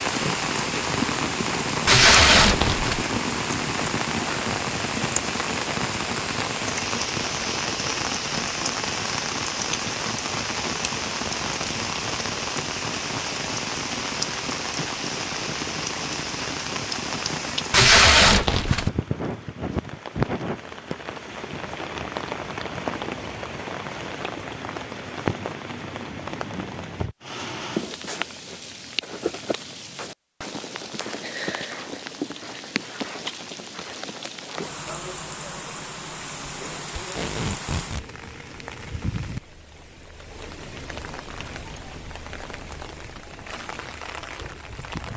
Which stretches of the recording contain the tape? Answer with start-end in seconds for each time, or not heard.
1.9-3.0, 17.7-18.9, 37.0-38.0.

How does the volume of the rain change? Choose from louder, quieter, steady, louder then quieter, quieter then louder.
quieter.